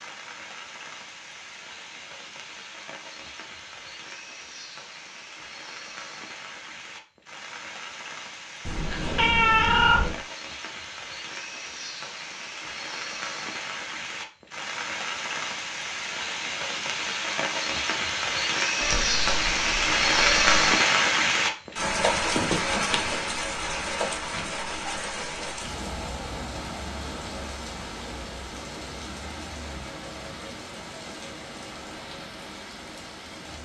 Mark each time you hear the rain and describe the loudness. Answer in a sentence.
The rain can be heard from 0.0 to 33.5 s, getting louder then quieter.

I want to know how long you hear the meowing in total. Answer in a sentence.
You can hear the meowing for 3 seconds altogether.